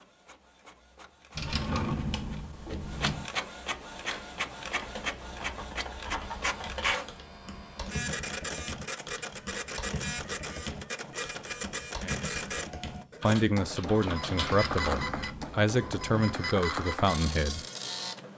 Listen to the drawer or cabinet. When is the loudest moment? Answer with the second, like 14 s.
2 s.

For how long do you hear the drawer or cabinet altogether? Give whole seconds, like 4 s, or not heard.
4 s.